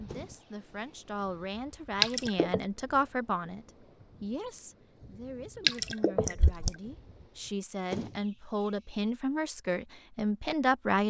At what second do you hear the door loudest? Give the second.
8 s.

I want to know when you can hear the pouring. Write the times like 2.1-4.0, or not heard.
2.0-2.6, 5.7-6.7.